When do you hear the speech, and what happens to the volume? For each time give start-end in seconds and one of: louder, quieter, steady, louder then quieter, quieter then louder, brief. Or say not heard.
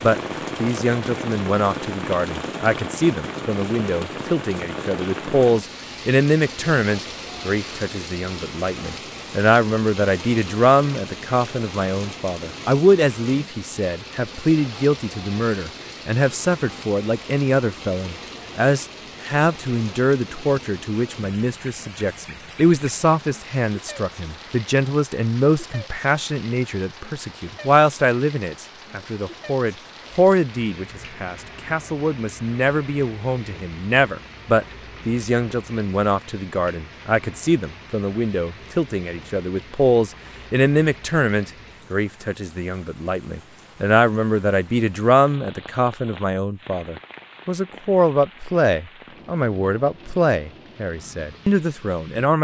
0.0-52.4 steady.